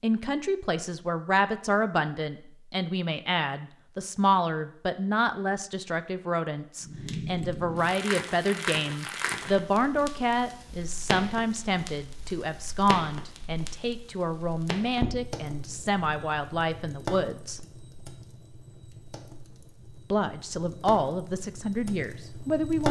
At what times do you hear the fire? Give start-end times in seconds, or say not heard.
6.8-22.8.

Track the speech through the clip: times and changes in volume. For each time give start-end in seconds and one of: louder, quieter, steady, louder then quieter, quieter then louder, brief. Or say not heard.
0.0-17.6 steady
20.1-22.8 brief.